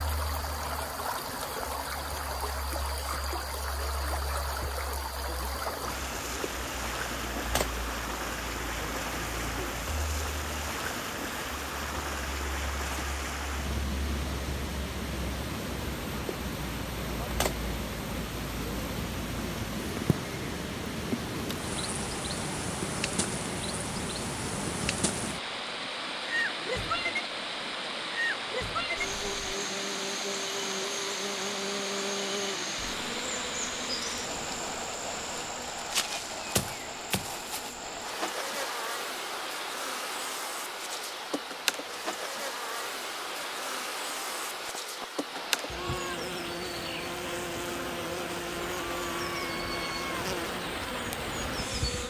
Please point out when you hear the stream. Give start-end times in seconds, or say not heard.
0.0-52.0.